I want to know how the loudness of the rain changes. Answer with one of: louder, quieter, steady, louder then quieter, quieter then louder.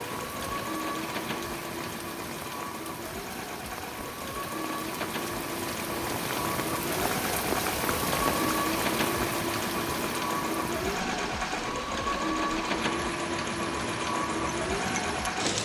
louder then quieter.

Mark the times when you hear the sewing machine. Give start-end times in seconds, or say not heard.
0.0-15.6.